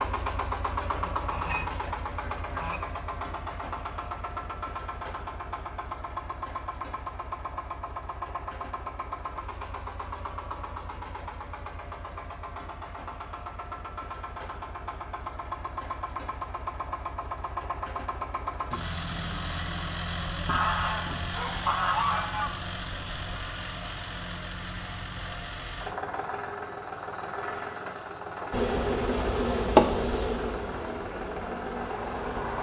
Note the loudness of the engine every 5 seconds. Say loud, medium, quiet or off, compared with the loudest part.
loud, loud, medium, loud, loud, loud, loud.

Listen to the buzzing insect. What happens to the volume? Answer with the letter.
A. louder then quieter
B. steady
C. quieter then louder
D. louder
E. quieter
A.